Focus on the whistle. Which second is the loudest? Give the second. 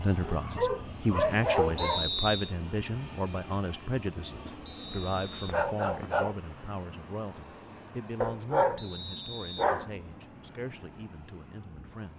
2 s.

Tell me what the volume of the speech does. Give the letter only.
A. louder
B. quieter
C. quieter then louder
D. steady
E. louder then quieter
B.